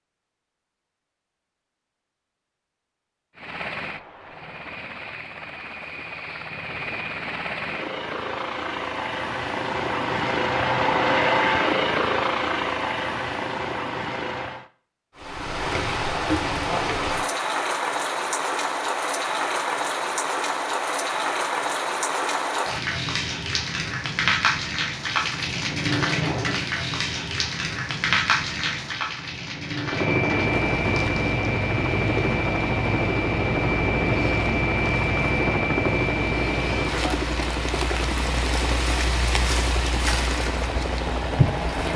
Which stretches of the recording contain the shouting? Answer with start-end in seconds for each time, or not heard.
not heard.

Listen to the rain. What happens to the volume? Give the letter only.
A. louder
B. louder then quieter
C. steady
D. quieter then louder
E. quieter
D.